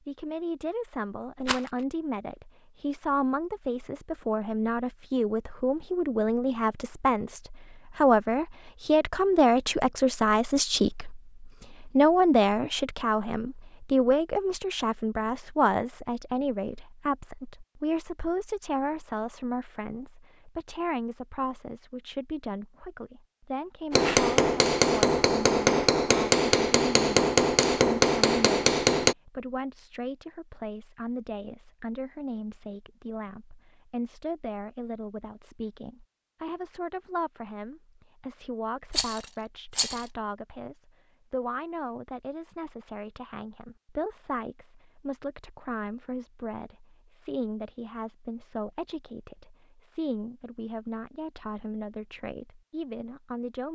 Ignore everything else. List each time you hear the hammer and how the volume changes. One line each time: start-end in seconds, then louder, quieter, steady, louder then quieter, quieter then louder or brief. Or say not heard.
23.9-29.1 steady.